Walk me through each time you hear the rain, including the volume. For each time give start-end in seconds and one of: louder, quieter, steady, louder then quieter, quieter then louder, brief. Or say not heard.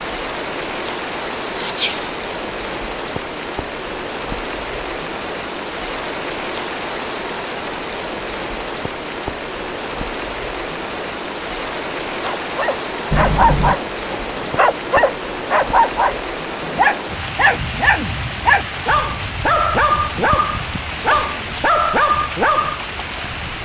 0.0-23.6 steady.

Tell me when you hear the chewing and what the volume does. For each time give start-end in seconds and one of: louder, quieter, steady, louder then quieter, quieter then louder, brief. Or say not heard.
not heard.